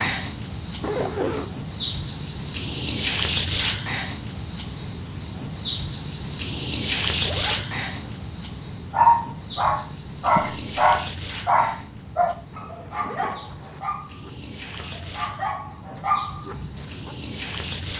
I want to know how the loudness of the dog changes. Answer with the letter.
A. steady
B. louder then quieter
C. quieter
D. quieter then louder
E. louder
D.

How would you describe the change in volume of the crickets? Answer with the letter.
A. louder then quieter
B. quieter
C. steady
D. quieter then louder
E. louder
B.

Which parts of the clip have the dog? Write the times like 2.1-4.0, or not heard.
8.9-17.1.